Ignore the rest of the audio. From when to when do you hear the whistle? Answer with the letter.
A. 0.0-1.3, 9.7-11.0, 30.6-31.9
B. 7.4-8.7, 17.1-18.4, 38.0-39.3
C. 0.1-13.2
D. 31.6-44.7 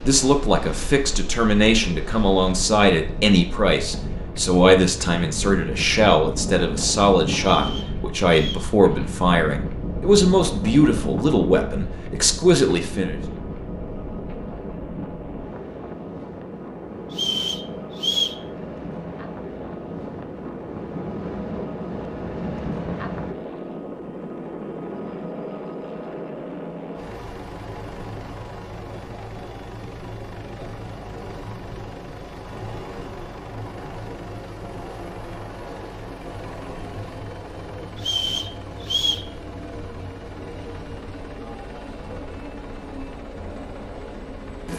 B.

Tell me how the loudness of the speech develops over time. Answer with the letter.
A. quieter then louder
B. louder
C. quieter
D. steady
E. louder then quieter
D.